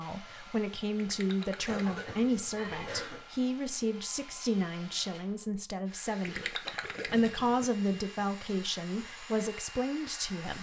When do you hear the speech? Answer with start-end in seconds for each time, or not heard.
0.0-10.5.